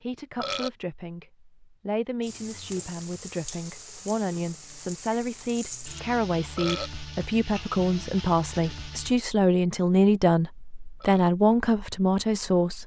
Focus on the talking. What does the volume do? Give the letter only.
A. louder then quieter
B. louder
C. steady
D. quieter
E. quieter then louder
B.